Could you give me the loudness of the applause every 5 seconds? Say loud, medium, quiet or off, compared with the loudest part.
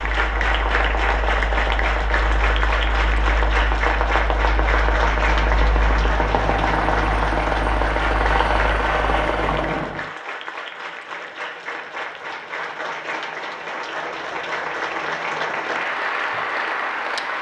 loud, loud, medium, loud.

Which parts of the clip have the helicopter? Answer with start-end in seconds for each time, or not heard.
0.0-10.1.